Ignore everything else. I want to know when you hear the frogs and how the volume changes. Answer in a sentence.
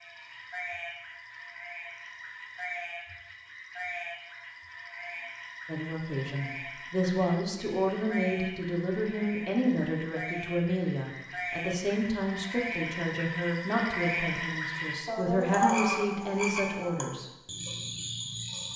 The frogs can be heard from 0.0 to 18.7 s, getting louder.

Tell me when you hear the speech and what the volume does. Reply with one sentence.
You can hear the speech from 5.7 to 17.3 s, at a steady volume.